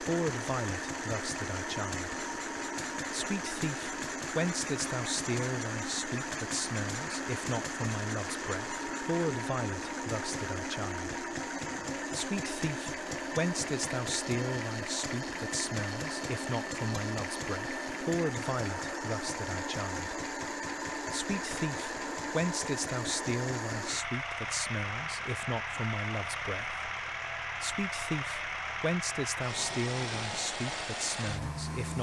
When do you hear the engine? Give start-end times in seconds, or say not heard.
0.0-31.9.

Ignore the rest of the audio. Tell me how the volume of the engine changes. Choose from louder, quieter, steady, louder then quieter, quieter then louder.
steady.